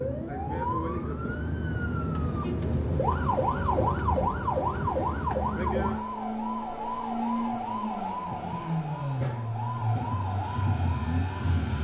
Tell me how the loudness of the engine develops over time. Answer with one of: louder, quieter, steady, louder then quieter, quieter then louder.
louder.